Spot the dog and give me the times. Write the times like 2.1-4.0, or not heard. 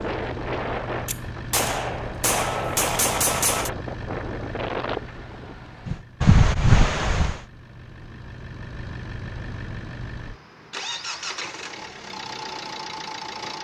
not heard.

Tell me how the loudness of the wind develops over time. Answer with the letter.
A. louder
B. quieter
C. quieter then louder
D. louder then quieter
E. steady
A.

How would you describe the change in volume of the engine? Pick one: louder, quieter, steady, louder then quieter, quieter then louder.
quieter then louder.